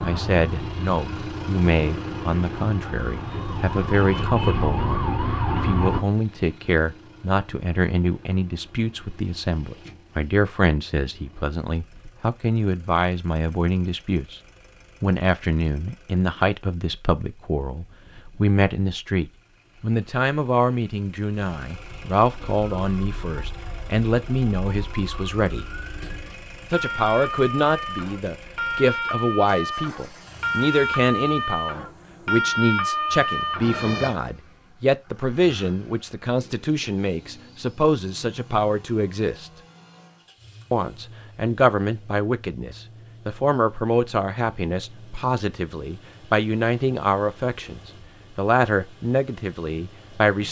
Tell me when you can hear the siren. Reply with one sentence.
The siren can be heard from 0.0 to 6.0 s and from 22.4 to 34.1 s.